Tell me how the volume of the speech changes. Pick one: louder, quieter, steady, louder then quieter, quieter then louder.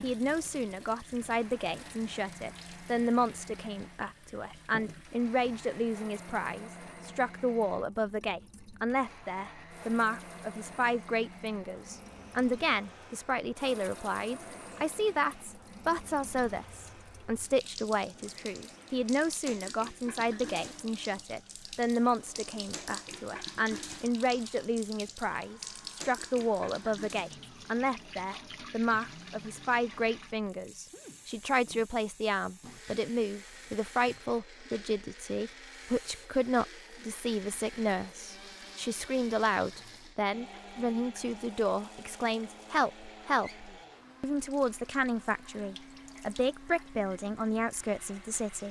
steady.